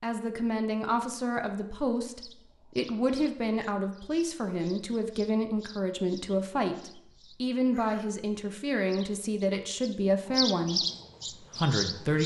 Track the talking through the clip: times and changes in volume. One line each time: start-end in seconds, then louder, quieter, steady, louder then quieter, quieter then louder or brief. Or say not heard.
0.0-10.8 steady
11.6-12.2 brief.